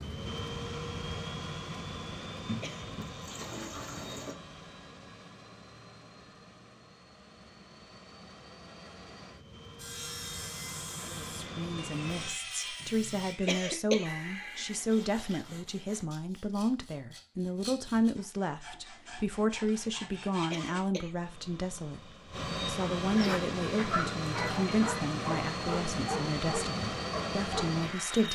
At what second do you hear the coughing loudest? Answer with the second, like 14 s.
14 s.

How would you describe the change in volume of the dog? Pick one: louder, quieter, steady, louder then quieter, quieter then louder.
steady.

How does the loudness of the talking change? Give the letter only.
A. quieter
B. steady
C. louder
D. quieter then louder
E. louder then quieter
B.